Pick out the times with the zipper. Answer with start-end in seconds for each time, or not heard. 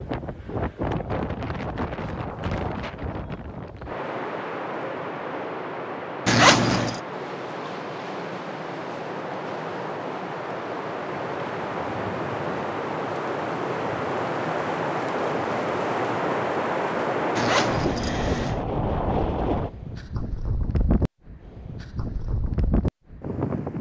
6.2-7.0, 17.4-18.6.